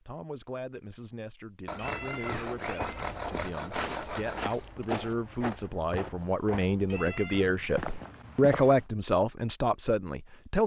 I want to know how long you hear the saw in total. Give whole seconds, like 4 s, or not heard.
3 s.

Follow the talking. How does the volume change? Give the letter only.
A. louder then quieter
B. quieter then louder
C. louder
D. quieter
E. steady
C.